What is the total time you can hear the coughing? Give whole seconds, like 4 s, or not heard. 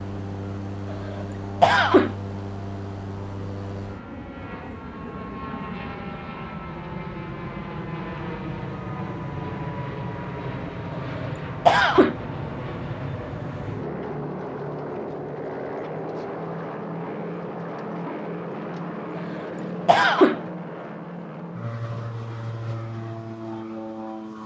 4 s.